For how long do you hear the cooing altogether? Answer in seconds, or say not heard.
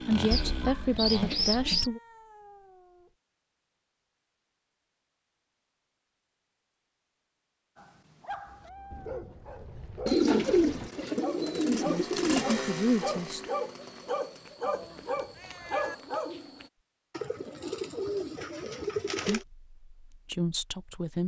6 s.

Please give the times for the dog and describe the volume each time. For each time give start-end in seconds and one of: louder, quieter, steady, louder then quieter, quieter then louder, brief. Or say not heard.
7.8-16.7 louder.